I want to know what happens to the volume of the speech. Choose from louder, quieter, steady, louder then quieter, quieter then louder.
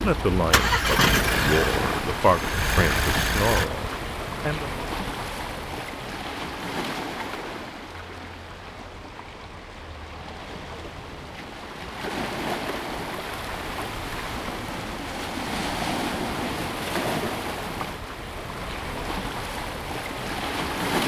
louder then quieter.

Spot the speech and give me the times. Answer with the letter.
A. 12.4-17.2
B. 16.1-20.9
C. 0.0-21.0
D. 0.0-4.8
D.